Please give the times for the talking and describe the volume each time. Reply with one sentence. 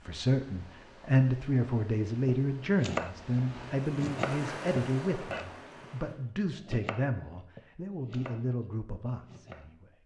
You can hear the talking from 0.1 to 9.9 s, getting quieter.